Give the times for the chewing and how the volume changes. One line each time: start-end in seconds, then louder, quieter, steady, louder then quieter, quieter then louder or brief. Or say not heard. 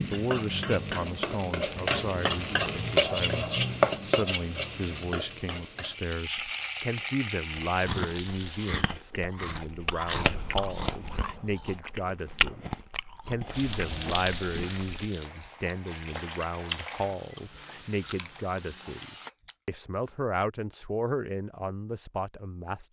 7.7-19.6 quieter.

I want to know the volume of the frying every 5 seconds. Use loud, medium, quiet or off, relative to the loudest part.
loud, medium, medium, quiet, off.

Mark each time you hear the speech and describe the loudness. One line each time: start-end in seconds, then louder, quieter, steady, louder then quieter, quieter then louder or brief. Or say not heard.
0.1-22.8 steady.